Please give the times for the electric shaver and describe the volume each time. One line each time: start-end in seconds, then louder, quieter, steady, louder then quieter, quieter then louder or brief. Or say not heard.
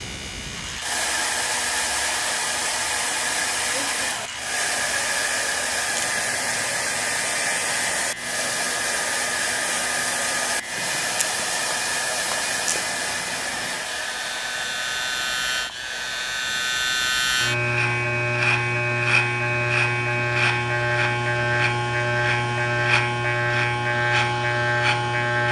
0.0-25.4 louder.